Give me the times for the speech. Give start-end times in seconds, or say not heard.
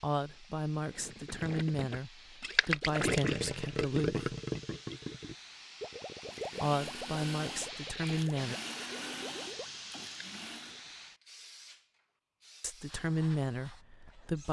0.0-4.3, 6.6-8.6, 12.6-14.4.